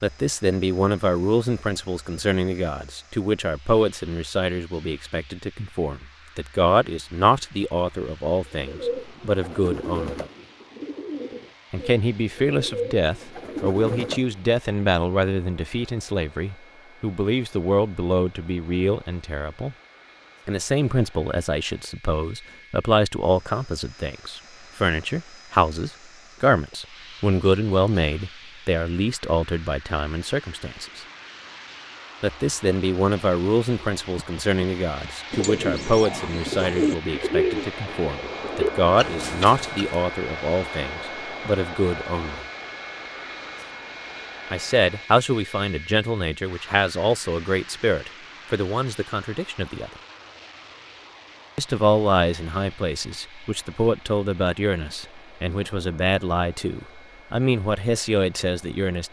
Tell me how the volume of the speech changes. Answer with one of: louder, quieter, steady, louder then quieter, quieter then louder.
steady.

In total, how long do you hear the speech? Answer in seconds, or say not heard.
52 s.